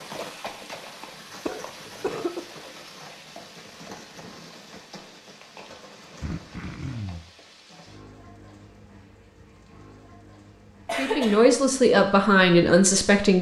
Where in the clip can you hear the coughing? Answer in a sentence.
You can hear the coughing from 1.4 to 2.4 s, from 6.2 to 7.2 s and from 10.8 to 11.6 s.